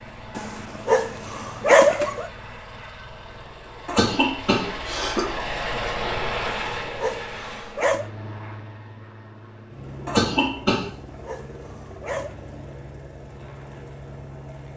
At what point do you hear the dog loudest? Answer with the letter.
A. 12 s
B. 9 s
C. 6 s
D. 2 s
D.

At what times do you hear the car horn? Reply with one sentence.
The car horn can't be heard in this clip.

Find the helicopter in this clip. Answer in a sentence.
The helicopter can be heard from 0.0 to 14.7 s.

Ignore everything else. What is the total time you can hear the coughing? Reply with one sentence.
The coughing can be heard for 2 seconds in total.